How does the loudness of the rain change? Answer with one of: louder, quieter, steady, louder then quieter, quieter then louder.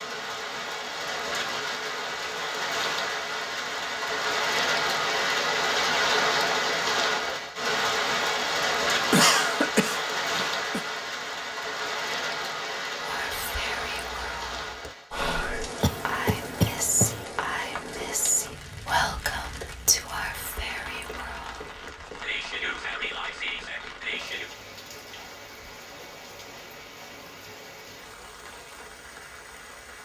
quieter.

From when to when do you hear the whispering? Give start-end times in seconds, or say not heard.
13.0-24.5.